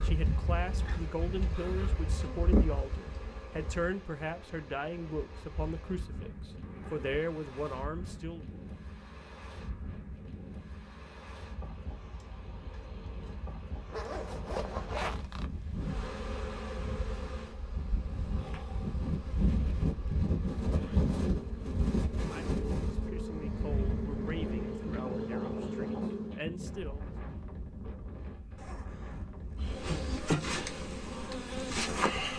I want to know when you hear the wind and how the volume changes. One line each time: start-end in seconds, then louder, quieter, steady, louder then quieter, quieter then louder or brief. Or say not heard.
0.0-32.3 louder then quieter.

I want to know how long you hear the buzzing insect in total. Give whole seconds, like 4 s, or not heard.
17 s.